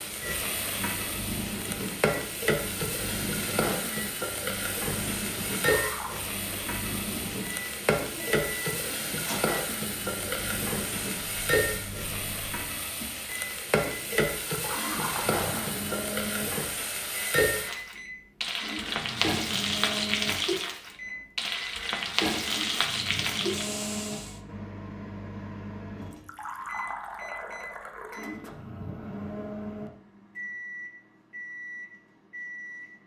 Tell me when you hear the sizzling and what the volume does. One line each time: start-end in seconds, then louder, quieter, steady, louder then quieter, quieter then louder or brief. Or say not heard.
0.0-24.4 steady.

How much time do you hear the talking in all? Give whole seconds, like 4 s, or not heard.
not heard.